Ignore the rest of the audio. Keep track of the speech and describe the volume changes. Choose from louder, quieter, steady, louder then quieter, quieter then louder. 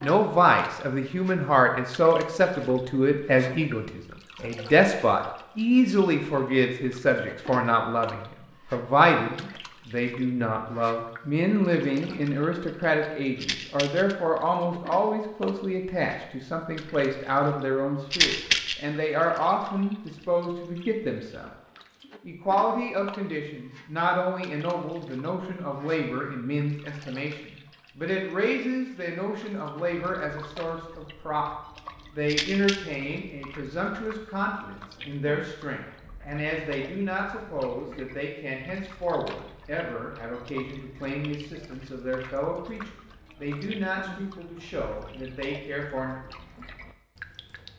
quieter.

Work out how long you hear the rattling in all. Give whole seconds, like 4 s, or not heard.
2 s.